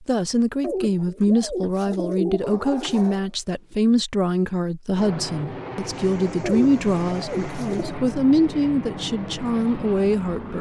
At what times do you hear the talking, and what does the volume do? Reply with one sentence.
You can hear the talking from 0.1 to 10.5 s, at a steady volume.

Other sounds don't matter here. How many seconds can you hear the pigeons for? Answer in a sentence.
You can hear the pigeons for 4 seconds altogether.